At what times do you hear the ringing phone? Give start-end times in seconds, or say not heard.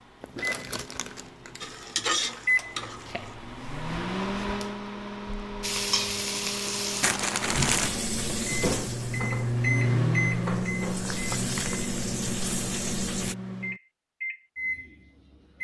not heard.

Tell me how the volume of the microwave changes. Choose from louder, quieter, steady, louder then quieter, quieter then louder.
louder then quieter.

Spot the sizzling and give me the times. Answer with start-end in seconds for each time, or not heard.
1.6-3.4, 5.6-13.3.